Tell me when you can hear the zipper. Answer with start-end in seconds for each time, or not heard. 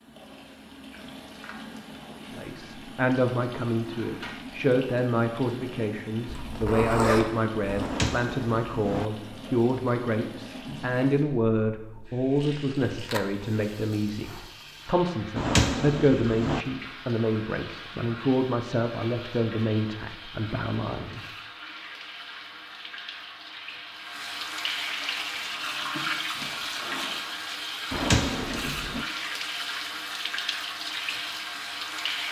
6.2-7.9, 12.9-14.4, 26.3-27.2.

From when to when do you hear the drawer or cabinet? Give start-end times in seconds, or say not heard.
7.8-9.1, 15.3-16.6, 27.9-29.1.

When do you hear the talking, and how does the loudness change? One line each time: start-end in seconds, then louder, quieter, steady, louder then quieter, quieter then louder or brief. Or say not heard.
2.3-21.3 steady.